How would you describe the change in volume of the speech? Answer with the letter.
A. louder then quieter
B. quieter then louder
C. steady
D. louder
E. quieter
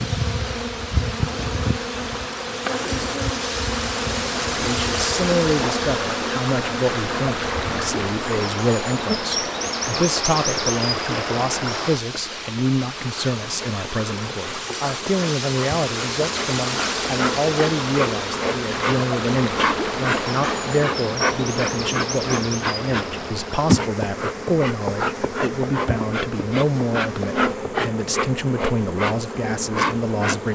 C.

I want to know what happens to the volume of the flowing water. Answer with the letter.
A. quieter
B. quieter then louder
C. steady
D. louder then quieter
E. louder
A.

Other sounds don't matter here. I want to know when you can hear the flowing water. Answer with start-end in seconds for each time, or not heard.
0.0-30.4.